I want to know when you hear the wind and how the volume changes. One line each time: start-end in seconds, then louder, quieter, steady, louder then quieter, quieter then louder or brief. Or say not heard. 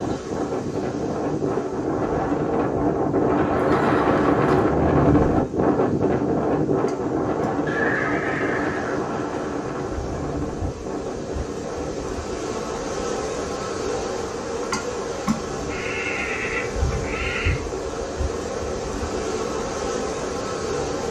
0.0-21.0 quieter.